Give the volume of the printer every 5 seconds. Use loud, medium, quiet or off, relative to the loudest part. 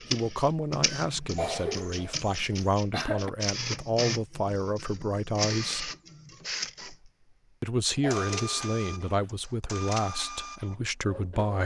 loud, loud, medium.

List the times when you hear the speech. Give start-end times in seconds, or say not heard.
0.1-5.9, 7.6-11.6.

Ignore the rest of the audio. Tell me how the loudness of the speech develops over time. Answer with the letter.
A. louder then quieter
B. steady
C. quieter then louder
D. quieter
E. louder
B.